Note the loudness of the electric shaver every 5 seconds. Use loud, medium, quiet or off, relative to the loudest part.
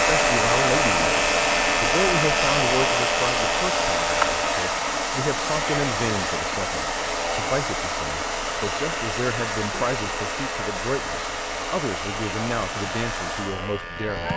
loud, medium, medium.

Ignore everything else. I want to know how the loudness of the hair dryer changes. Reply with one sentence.
The loudness of the hair dryer goes down.